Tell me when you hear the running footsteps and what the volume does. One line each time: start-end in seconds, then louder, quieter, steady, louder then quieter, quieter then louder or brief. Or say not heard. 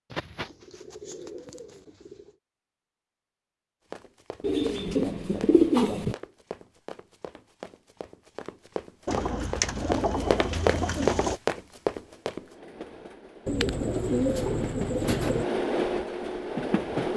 3.9-12.6 louder.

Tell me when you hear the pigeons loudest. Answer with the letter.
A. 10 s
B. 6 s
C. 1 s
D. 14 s
B.